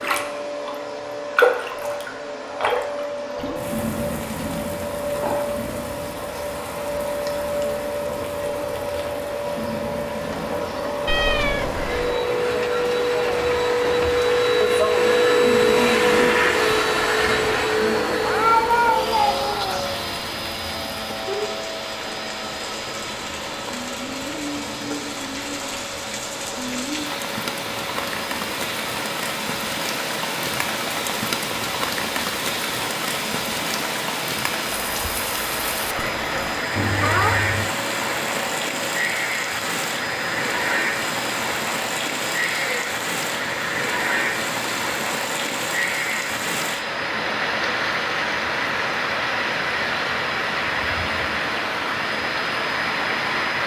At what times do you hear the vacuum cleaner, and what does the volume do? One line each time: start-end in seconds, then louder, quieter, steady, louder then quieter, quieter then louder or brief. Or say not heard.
0.0-53.6 louder then quieter.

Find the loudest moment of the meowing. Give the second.
19 s.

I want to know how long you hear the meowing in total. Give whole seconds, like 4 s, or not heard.
4 s.